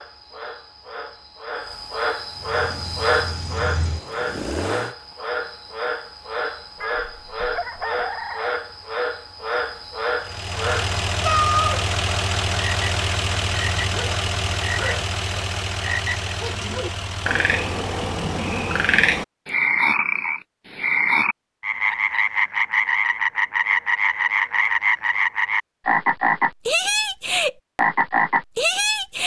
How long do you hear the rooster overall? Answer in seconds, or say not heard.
2 s.